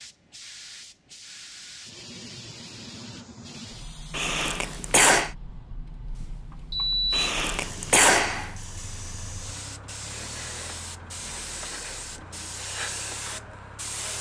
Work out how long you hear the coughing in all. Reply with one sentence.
You can hear the coughing for 3 seconds altogether.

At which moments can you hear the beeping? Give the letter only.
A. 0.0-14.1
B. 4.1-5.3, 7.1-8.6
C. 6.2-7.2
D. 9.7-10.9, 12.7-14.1
C.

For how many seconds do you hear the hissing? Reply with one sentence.
The hissing can be heard for 14 seconds in total.